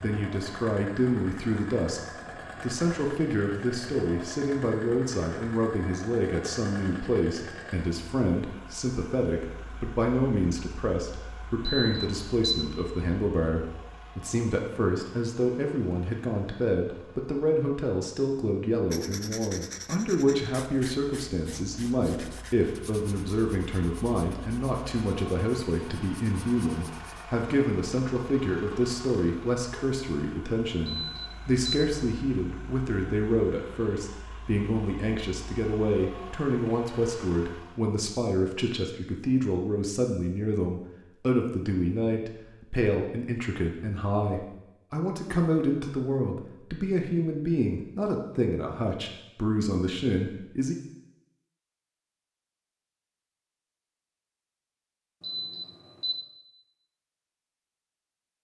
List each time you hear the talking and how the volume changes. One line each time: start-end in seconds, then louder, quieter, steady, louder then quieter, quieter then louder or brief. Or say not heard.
0.0-2.0 brief
2.6-50.8 steady.